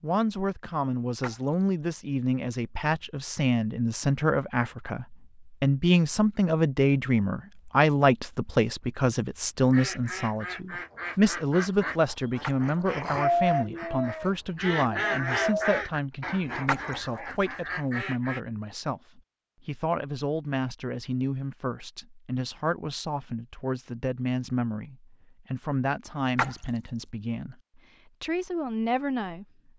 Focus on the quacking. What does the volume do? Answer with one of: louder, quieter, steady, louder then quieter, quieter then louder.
louder then quieter.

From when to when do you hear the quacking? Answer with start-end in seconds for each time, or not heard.
9.7-18.4.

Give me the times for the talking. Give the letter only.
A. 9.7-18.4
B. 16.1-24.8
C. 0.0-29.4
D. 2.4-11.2
C.